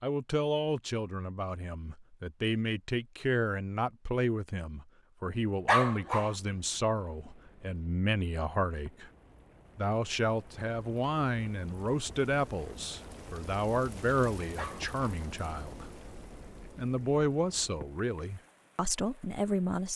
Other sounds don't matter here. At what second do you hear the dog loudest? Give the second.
6 s.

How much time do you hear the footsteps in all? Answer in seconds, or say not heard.
not heard.